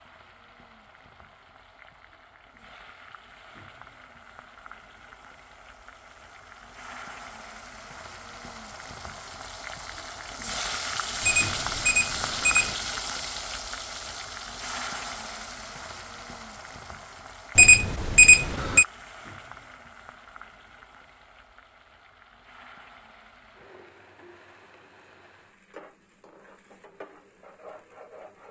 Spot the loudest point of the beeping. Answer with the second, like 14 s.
18 s.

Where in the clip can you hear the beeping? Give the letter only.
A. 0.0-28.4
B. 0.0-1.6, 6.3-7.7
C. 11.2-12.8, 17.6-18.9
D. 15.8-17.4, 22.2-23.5
C.